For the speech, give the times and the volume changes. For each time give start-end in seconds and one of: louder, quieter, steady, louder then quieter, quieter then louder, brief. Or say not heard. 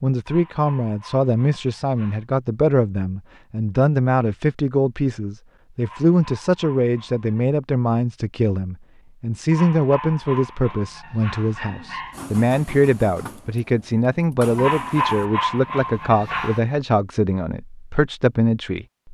0.0-19.0 steady.